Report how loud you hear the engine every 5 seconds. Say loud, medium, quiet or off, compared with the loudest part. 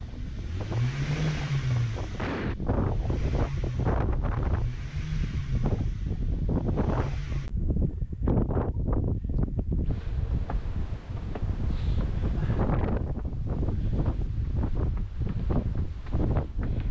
loud, medium, off, off.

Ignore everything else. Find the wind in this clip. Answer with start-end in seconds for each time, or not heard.
0.0-16.8.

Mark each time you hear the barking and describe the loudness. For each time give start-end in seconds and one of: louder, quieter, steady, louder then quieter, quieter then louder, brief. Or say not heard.
not heard.